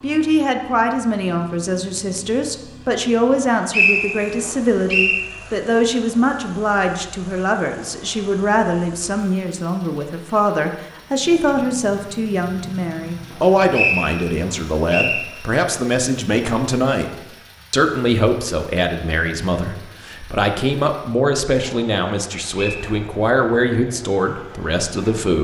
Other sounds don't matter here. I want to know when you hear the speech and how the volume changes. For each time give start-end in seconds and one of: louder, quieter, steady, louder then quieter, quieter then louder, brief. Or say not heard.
0.0-25.3 steady.